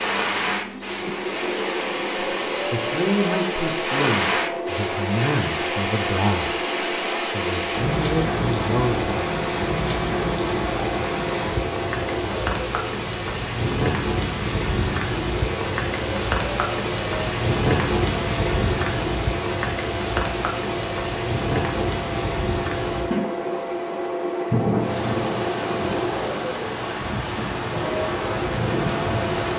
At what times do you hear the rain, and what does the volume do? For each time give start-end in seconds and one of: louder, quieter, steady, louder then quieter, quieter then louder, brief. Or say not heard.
0.0-29.5 steady.